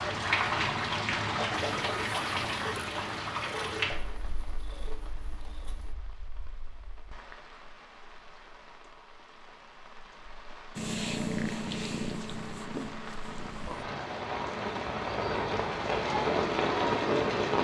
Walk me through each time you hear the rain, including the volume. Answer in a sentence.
You can hear the rain from 0.0 to 17.5 s, getting quieter then louder.